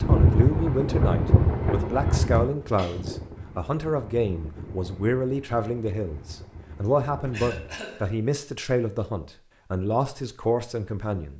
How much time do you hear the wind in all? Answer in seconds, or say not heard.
8 s.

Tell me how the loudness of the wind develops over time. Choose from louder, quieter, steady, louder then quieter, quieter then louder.
quieter.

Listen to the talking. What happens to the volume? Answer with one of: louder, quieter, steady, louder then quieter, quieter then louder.
steady.